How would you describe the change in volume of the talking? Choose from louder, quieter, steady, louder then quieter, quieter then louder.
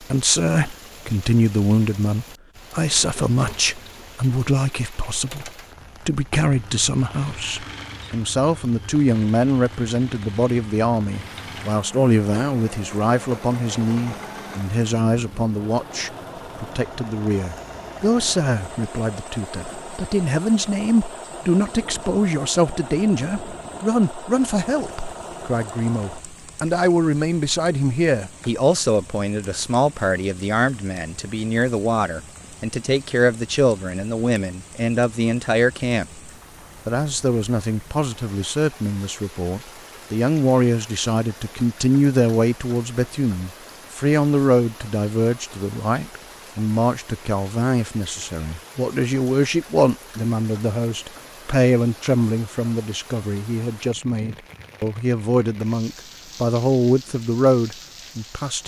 steady.